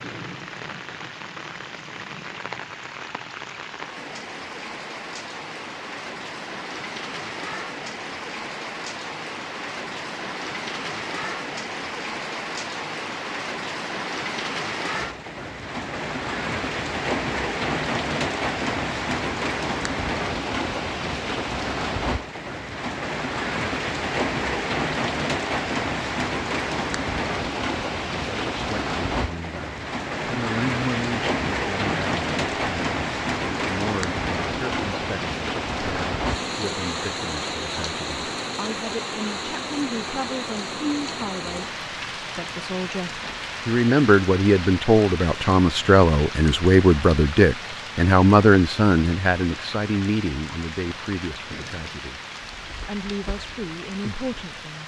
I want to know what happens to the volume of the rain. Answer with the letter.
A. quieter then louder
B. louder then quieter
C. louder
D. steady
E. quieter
B.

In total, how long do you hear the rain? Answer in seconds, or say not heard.
55 s.